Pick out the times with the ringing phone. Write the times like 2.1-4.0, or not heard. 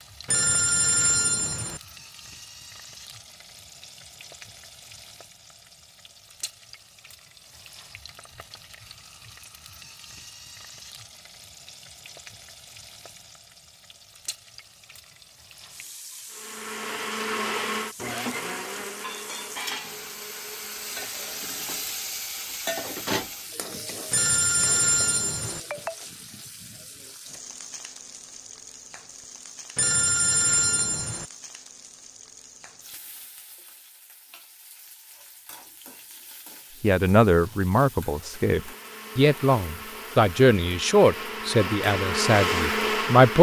0.2-1.8, 24.1-25.6, 29.8-31.2.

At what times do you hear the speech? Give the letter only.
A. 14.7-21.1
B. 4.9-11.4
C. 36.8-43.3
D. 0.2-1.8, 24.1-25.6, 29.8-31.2
C.